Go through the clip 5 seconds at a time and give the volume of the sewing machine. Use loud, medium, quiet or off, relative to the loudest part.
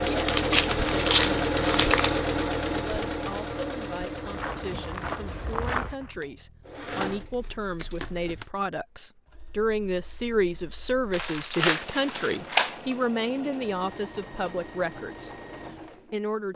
loud, quiet, quiet, quiet.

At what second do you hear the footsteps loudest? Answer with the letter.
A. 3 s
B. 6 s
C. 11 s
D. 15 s
B.